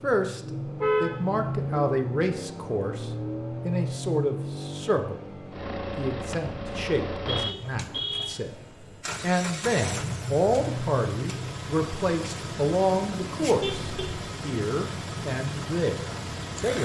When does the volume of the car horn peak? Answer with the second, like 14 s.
1 s.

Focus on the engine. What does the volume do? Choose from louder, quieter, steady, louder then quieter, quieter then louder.
steady.